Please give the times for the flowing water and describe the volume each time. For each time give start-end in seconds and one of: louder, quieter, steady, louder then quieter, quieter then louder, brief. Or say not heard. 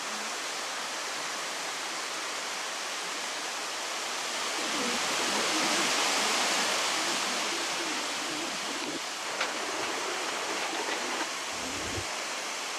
0.0-12.7 louder then quieter.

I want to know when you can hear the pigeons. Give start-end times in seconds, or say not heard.
4.5-12.1.